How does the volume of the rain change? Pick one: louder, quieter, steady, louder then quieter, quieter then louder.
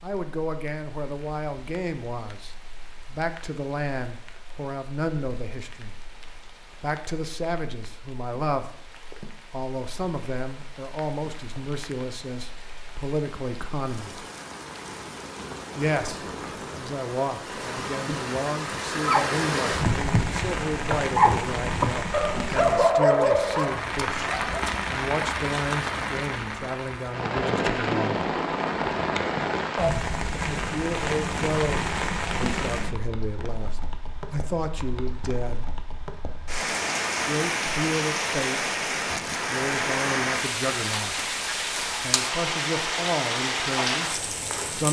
louder.